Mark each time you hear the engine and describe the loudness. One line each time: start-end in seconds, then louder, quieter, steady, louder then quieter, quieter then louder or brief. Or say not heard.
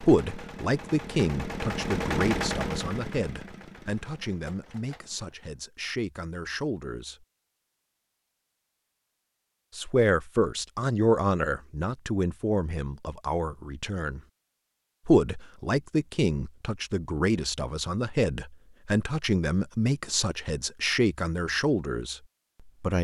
0.0-5.5 louder then quieter.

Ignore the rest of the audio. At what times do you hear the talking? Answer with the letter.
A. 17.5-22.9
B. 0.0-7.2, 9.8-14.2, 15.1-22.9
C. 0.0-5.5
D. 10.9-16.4
B.